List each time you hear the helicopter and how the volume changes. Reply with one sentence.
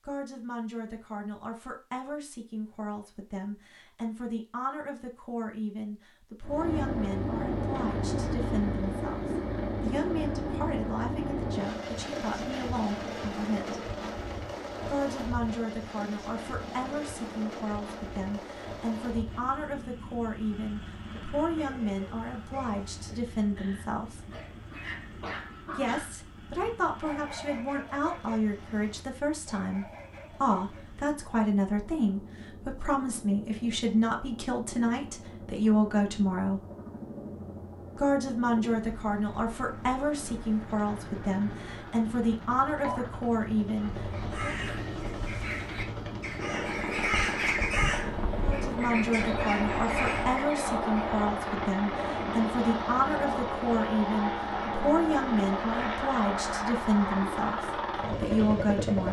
The helicopter can be heard from 6.4 to 59.0 s, getting quieter then louder.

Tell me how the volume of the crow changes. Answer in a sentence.
The loudness of the crow goes up, then down.